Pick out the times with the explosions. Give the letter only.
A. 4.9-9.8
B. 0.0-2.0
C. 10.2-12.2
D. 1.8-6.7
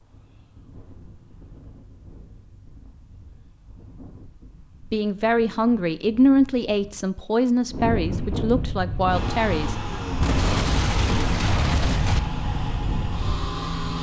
C.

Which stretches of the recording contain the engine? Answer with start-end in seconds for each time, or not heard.
9.1-13.9.